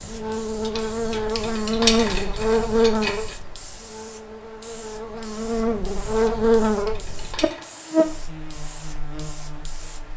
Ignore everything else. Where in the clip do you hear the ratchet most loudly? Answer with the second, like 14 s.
2 s.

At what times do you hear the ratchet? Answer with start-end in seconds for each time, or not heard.
0.6-3.4, 6.2-7.7.